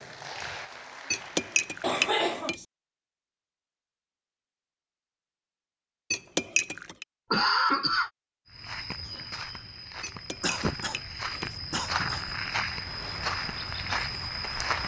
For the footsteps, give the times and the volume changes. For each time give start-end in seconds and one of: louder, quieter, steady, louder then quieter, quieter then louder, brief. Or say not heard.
8.4-14.8 louder.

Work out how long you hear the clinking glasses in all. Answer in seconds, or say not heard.
4 s.